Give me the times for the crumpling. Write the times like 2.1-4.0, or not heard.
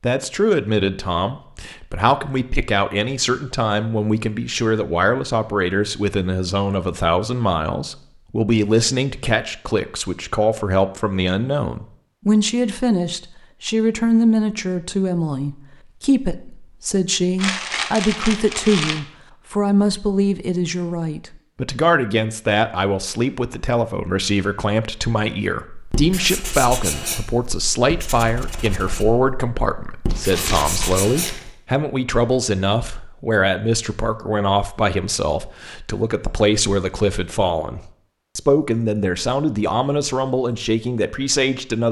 17.4-19.0, 30.1-31.5.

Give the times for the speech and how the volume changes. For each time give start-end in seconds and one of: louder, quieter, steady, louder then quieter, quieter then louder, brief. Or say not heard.
0.0-41.8 steady.